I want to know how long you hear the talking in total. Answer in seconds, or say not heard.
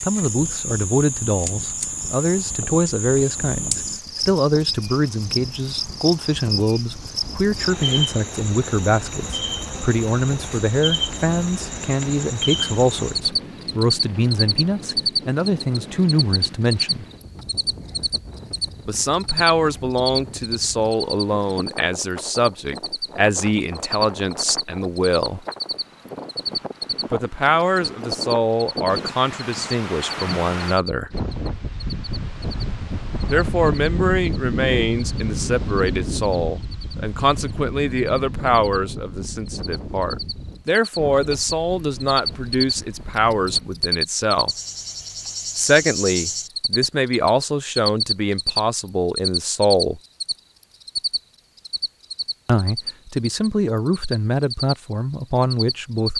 47 s.